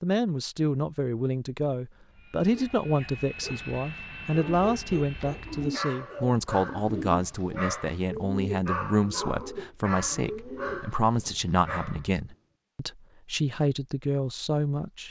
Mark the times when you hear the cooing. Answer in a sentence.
You can hear the cooing from 5.5 to 10.8 s.